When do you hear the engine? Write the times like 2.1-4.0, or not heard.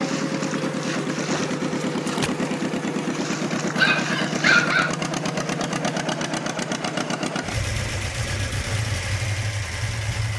0.0-10.3.